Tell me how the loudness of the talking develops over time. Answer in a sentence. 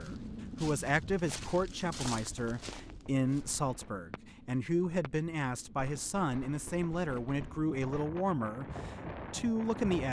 The volume of the talking stays about the same.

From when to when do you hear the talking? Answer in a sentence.
You can hear the talking from 0.0 to 10.0 s.